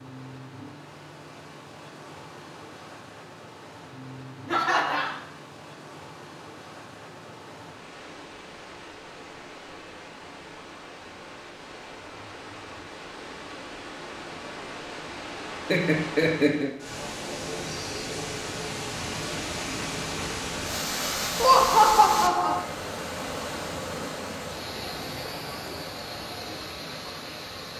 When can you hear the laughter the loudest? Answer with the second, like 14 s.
22 s.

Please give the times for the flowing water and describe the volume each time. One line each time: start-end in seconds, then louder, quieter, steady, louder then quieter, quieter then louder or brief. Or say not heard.
0.0-27.7 louder.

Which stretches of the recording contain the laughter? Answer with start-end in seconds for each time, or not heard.
4.5-5.2, 15.7-16.7, 21.4-22.6.